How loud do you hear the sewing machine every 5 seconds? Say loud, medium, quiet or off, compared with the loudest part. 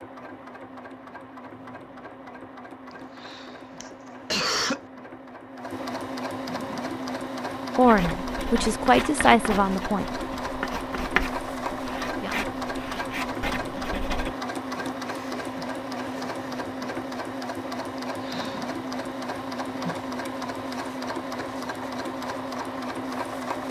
medium, loud, loud, loud, loud.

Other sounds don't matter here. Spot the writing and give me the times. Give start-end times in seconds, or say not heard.
7.8-14.3.